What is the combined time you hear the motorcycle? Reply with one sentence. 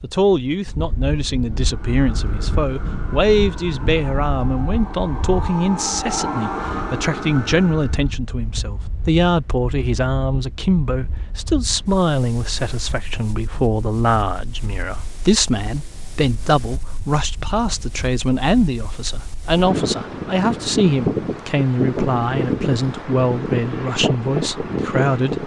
You can't hear the motorcycle here.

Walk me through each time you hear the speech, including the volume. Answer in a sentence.
The speech can be heard from 0.0 to 25.4 s, at a steady volume.